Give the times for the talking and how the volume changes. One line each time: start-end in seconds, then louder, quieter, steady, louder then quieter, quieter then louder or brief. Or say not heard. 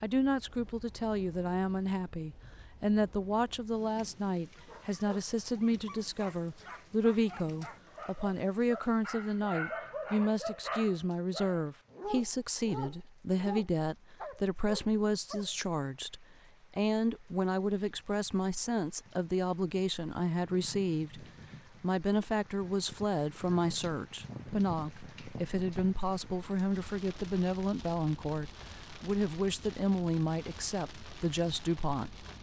0.0-32.2 steady.